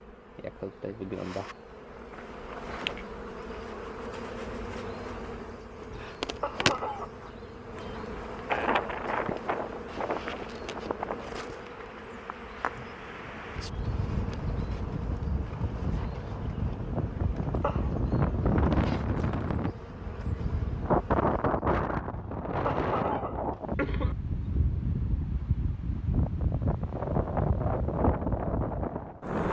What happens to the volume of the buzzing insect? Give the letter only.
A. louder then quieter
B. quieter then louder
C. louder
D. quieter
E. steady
D.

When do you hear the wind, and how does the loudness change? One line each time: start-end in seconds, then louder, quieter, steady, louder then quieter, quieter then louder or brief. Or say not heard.
8.4-29.4 louder.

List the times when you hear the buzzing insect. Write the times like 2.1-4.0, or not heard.
0.0-21.6.